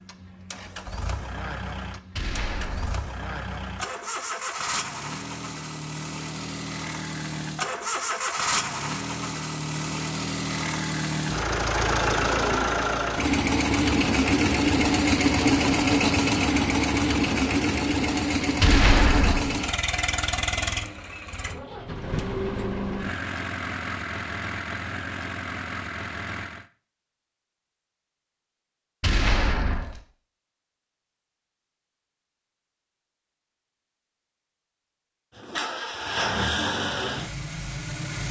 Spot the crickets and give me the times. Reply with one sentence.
You can't hear the crickets here.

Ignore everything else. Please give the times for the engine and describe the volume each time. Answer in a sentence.
The engine can be heard from 0.0 to 26.6 s, getting louder then quieter; and briefly from 35.4 to 38.2 s.